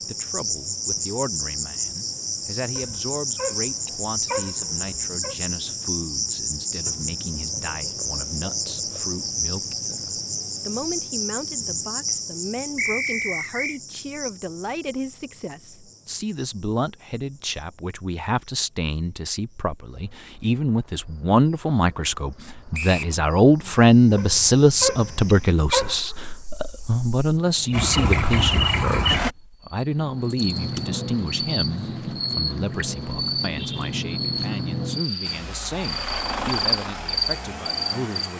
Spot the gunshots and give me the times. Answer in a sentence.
The gunshots can't be heard in this clip.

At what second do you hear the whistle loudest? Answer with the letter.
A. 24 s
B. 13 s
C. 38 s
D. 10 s
B.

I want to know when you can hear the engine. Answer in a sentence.
You can hear the engine from 27.7 to 29.3 s and from 35.2 to 38.3 s.